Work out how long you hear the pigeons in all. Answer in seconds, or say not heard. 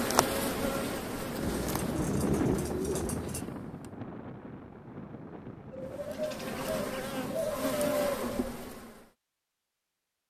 5 s.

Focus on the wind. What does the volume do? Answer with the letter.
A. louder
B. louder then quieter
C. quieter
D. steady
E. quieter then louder
C.